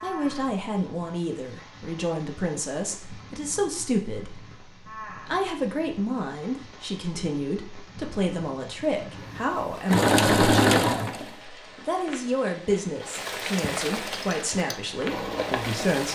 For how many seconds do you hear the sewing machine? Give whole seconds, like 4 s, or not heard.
4 s.